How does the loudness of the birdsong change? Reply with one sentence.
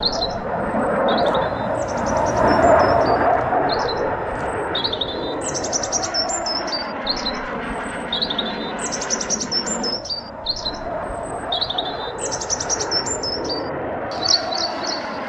The volume of the birdsong goes up.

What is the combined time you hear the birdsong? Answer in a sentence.
The birdsong can be heard for 15 seconds in total.